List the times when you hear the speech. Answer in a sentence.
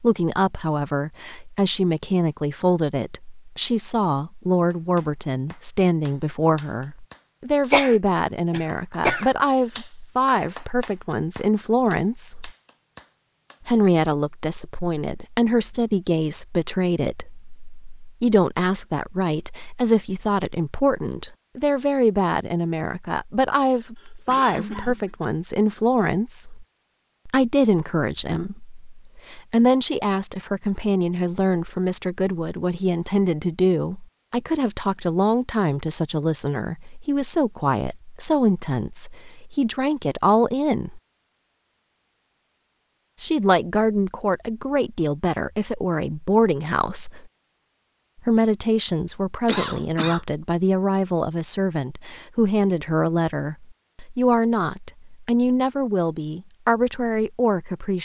You can hear the speech from 0.0 to 12.5 s, from 13.7 to 26.6 s, from 27.2 to 41.0 s, from 43.2 to 47.2 s and from 48.2 to 57.9 s.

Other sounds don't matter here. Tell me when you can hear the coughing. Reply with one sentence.
You can hear the coughing from 7.7 to 9.3 s, from 23.9 to 25.1 s and from 49.5 to 50.2 s.